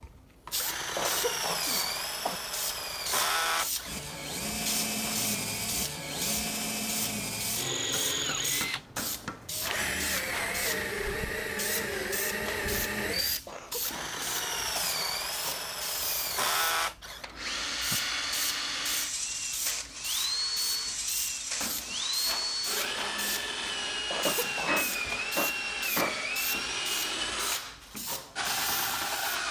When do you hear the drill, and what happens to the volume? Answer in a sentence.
You can hear the drill from 0.0 to 29.4 s, at a steady volume.